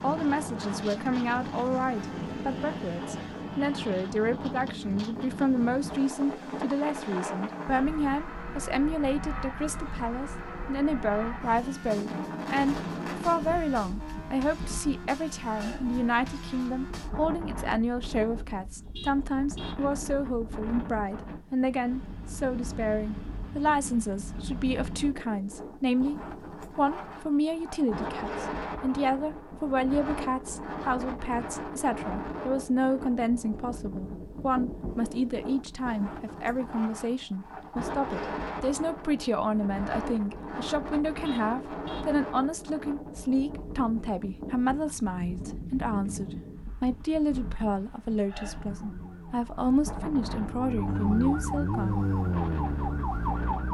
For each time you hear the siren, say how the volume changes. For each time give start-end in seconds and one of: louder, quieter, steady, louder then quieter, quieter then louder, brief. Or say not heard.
48.4-53.7 louder.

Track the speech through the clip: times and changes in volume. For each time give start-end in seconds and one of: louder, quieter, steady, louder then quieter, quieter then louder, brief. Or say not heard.
0.0-52.0 steady.